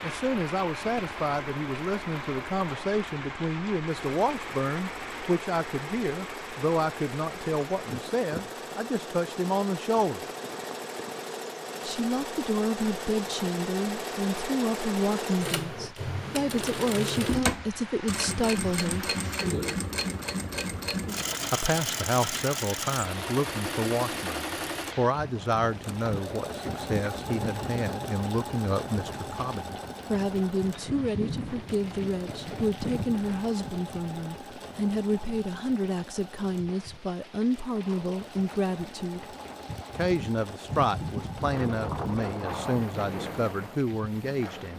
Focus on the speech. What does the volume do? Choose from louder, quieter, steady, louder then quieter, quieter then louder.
steady.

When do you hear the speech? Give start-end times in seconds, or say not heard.
0.0-10.2, 11.8-19.1, 21.5-39.2, 40.0-44.7.